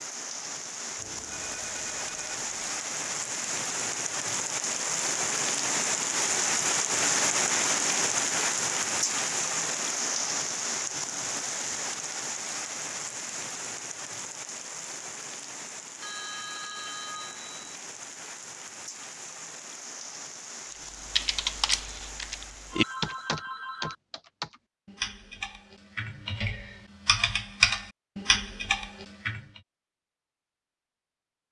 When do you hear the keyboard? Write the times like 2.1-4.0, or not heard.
21.1-29.4.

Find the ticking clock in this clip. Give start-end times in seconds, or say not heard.
not heard.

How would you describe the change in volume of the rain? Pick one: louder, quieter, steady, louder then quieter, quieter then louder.
louder then quieter.